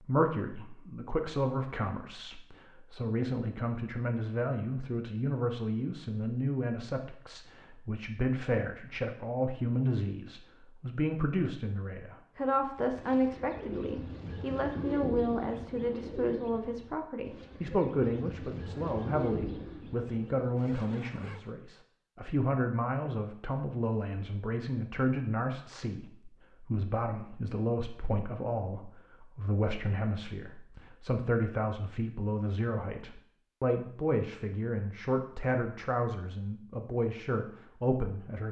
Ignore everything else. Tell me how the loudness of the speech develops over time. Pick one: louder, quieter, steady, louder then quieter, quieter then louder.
steady.